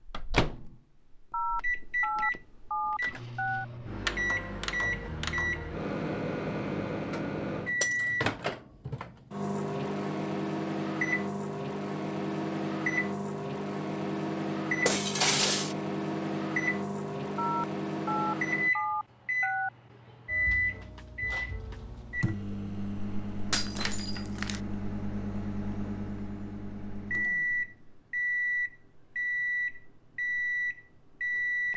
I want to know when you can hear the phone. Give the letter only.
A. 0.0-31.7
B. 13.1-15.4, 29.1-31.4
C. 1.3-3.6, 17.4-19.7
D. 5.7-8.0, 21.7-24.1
C.